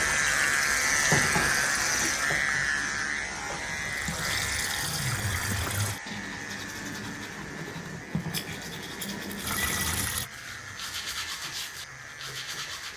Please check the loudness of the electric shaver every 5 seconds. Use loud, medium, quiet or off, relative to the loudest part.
loud, quiet, quiet.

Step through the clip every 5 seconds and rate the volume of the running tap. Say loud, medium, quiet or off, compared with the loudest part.
loud, loud, medium.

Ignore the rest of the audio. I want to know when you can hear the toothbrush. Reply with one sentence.
You can hear the toothbrush from 2.6 to 12.9 s.